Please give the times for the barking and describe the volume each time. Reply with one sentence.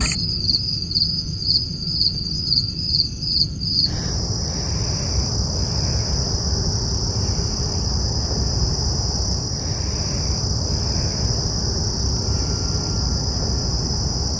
You can't hear the barking here.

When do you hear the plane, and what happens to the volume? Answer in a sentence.
You can hear the plane from 0.0 to 14.3 s, at a steady volume.